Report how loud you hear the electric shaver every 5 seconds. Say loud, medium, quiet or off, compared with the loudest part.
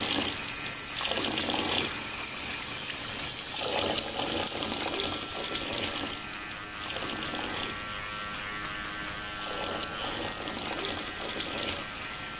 medium, loud, loud.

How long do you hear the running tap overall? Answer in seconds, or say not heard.
12 s.